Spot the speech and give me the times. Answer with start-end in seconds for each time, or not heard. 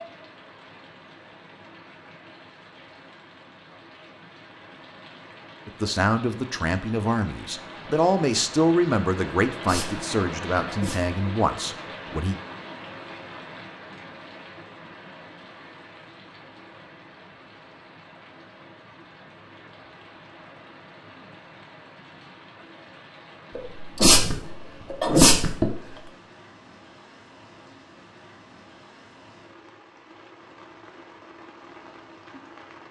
5.7-12.4.